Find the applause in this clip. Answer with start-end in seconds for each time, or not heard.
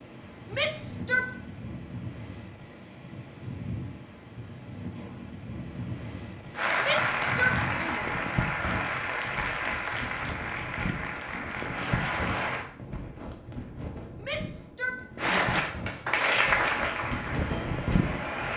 6.5-12.7, 15.2-18.5.